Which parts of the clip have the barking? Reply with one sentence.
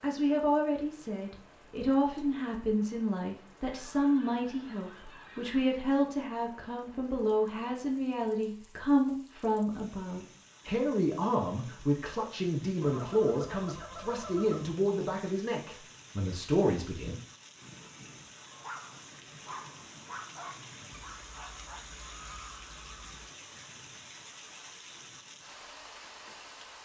The barking can be heard from 18.4 to 21.9 s.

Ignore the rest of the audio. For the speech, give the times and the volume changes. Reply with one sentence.
You can hear the speech from 0.0 to 17.1 s, at a steady volume.